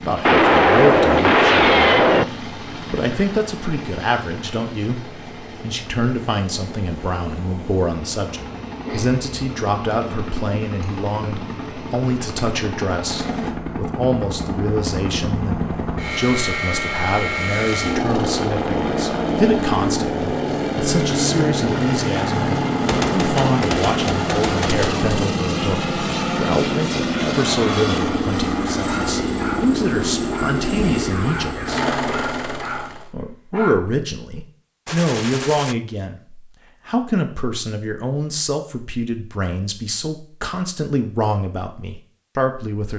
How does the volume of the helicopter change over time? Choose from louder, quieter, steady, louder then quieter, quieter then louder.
louder.